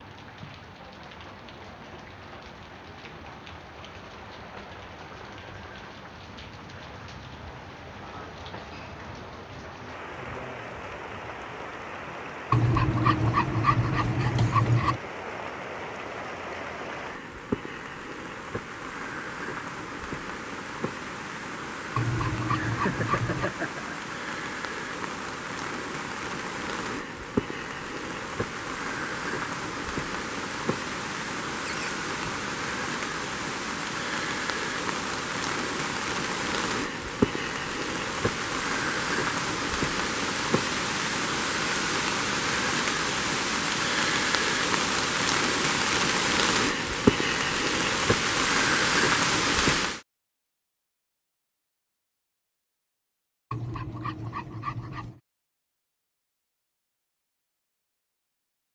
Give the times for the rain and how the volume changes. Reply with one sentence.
The rain can be heard from 0.0 to 50.0 s, getting louder.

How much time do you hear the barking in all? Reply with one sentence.
You can hear the barking for 6 seconds altogether.